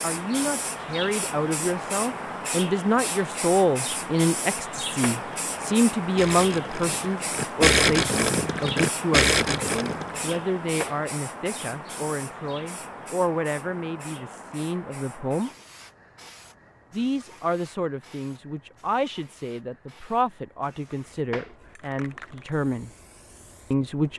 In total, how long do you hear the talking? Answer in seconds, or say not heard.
22 s.